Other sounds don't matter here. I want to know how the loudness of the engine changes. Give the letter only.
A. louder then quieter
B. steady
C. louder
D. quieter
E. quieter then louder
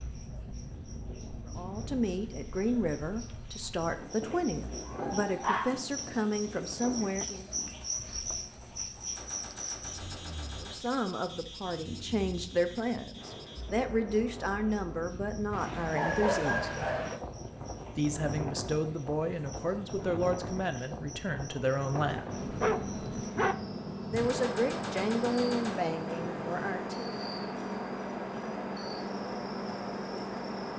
B.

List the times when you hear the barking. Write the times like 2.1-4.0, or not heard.
4.2-5.8, 15.5-17.2, 21.9-23.6.